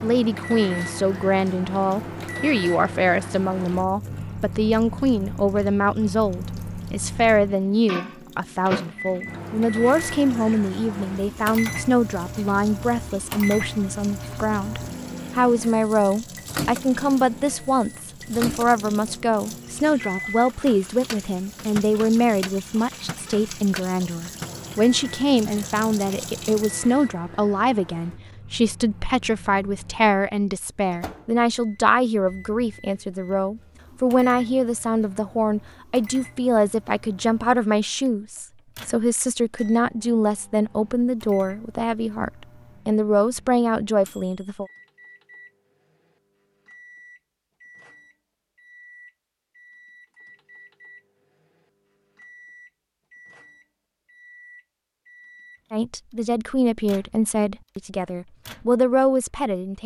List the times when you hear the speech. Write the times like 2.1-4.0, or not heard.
0.0-44.6, 55.7-59.8.